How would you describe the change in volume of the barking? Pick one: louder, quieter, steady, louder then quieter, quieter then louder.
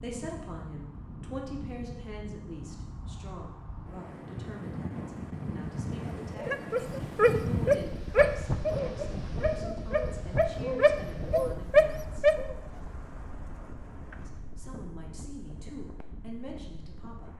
quieter then louder.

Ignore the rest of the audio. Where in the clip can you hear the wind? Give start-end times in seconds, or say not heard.
0.0-17.3.